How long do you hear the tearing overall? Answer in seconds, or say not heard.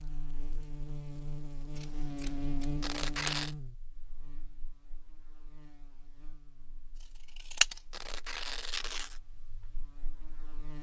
2 s.